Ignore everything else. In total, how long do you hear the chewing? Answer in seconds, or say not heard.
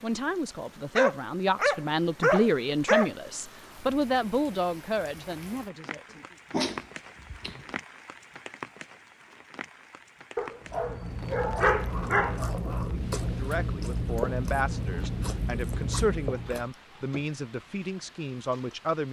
6 s.